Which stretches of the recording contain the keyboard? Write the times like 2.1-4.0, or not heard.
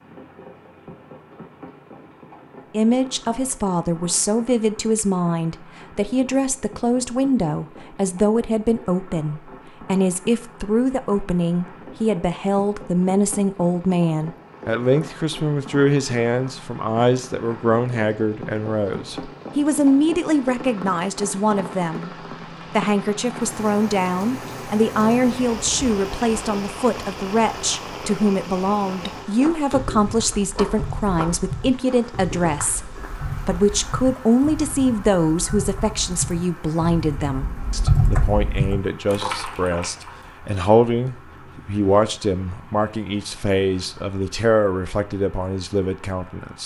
29.7-40.1.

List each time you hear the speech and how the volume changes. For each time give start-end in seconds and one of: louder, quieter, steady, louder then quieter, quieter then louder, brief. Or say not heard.
2.7-46.6 steady.